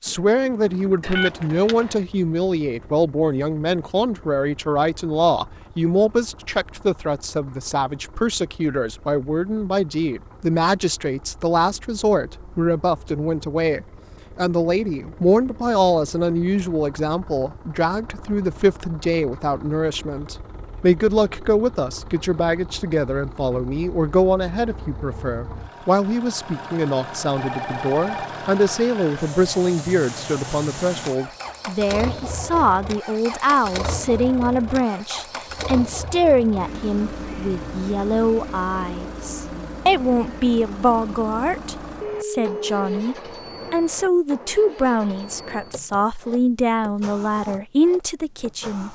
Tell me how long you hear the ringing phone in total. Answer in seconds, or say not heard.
3 s.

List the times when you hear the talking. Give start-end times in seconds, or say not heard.
0.0-48.8.